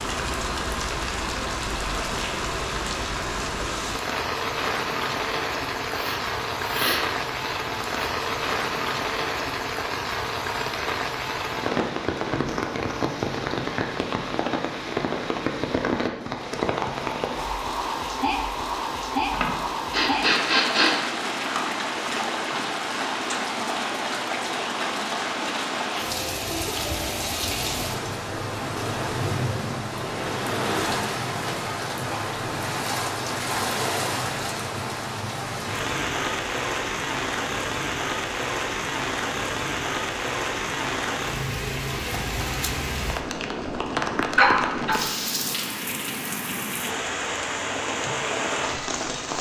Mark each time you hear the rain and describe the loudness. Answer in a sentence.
The rain can be heard from 0.0 to 49.3 s, at a steady volume.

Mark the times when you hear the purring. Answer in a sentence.
You can't hear the purring here.